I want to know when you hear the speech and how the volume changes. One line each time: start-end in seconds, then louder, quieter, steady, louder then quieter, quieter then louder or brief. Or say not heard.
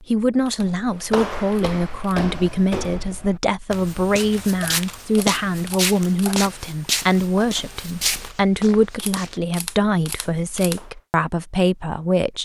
0.0-12.4 steady.